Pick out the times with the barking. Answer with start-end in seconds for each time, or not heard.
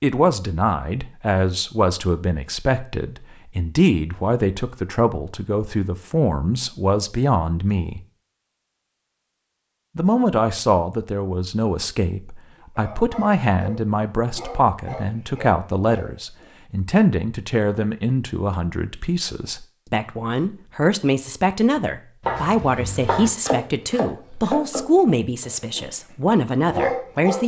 12.6-16.5, 24.9-27.4.